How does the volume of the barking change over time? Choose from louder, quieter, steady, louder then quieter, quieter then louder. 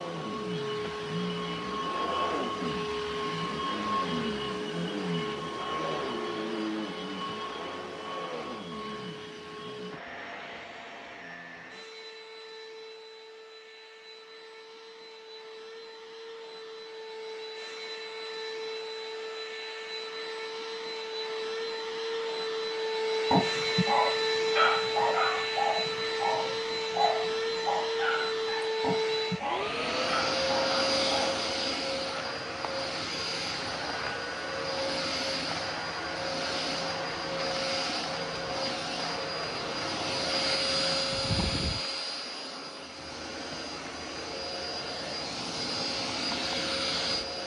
quieter.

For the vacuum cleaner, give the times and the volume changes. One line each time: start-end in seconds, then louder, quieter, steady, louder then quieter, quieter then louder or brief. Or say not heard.
0.0-47.4 quieter then louder.